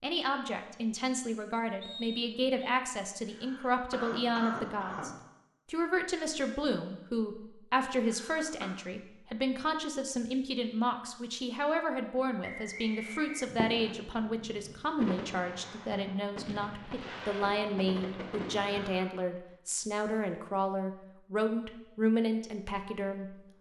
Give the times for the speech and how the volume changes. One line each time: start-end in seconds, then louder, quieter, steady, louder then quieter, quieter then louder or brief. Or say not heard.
0.0-23.4 steady.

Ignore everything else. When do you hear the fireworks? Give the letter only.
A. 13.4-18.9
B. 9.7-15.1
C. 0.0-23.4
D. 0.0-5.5
A.